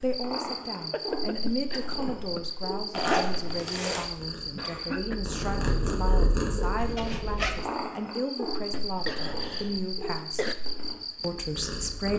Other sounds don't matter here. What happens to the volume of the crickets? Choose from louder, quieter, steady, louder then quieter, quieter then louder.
quieter then louder.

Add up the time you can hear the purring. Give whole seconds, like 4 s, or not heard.
12 s.